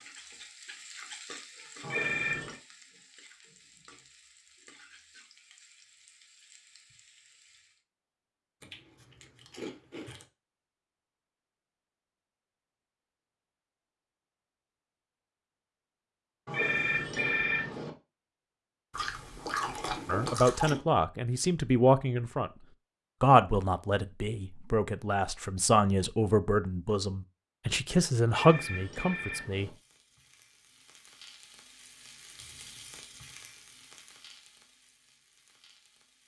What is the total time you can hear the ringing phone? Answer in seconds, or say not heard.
4 s.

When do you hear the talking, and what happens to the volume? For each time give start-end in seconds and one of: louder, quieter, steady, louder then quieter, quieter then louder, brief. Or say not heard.
20.1-22.5 brief
23.2-29.7 louder.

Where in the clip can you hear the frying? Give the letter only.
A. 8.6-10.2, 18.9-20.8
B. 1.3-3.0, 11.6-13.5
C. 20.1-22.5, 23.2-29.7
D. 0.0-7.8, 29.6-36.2
D.